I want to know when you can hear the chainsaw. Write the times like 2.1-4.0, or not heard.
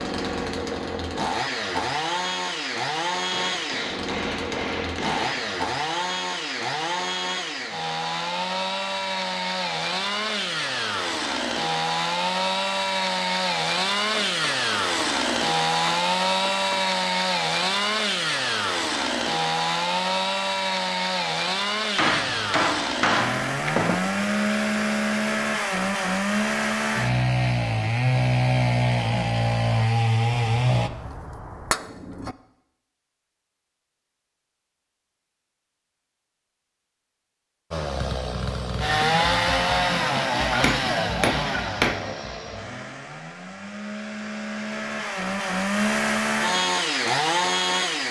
0.0-30.9, 37.7-48.0.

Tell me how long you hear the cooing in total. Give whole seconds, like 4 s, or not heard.
not heard.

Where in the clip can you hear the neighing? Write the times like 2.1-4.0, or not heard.
not heard.